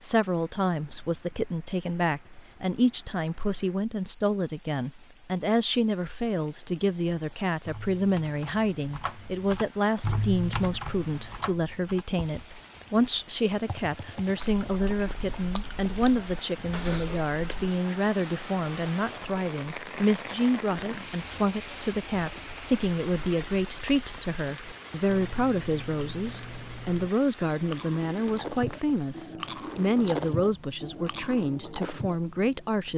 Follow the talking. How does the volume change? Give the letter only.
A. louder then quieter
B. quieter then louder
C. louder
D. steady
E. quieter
D.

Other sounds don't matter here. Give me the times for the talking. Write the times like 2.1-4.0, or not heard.
0.0-32.9.